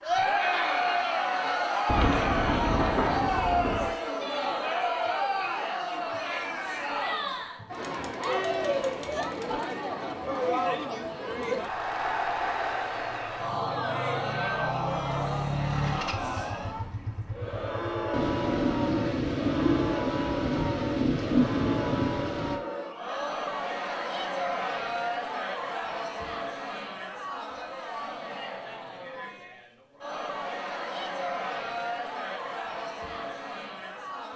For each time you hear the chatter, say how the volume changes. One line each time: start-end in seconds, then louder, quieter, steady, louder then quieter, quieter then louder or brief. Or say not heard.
0.0-34.3 quieter.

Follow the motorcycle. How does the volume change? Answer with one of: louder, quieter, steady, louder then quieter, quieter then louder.
louder then quieter.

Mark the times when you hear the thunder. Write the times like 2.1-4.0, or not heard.
1.9-3.9, 18.1-22.6.